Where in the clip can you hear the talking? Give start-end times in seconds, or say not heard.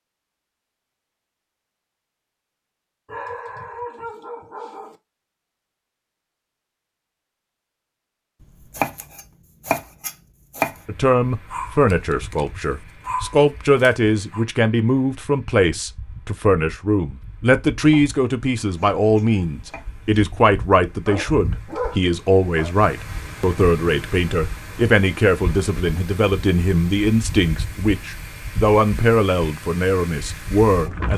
10.8-31.1.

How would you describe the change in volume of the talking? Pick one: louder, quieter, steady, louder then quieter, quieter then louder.
steady.